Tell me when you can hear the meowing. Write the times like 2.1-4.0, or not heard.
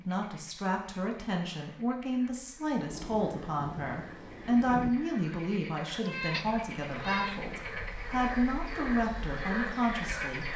6.0-7.5.